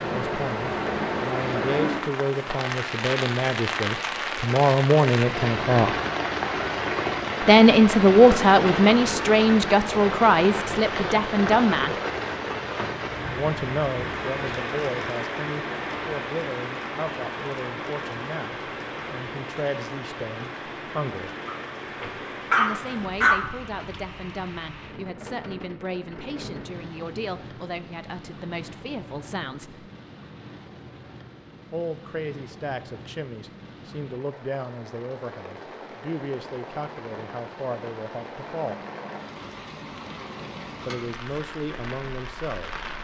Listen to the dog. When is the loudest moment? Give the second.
23 s.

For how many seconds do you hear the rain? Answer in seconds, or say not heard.
43 s.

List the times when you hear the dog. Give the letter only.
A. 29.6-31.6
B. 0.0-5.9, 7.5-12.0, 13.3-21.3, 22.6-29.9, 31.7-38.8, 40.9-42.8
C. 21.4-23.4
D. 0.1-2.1
C.